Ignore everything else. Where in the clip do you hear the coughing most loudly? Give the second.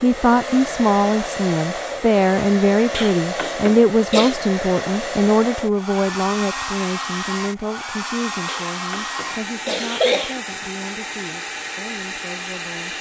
10 s.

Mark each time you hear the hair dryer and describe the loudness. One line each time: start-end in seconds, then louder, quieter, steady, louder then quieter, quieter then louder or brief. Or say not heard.
0.0-12.9 steady.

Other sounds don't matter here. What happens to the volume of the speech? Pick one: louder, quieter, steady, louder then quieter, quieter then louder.
quieter.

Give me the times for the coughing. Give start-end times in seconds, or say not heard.
2.9-4.3, 8.4-10.4.